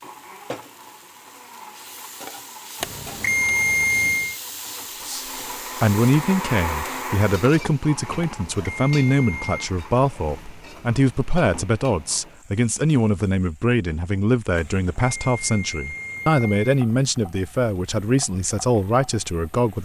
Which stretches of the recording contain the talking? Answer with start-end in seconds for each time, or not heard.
5.0-19.8.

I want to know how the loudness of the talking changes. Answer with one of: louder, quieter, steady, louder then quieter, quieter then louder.
steady.